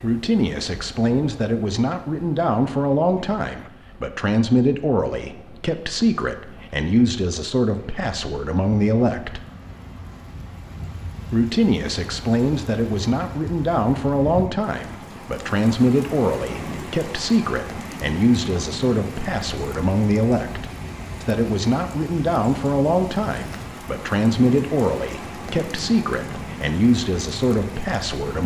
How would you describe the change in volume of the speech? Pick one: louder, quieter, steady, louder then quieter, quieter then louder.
steady.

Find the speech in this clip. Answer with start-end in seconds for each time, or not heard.
0.0-9.4, 11.3-28.4.